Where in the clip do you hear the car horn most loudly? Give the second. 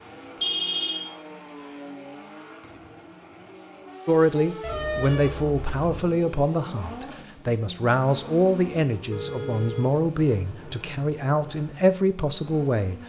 1 s.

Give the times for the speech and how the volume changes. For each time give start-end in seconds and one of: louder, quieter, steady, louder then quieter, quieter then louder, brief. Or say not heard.
4.0-13.0 steady.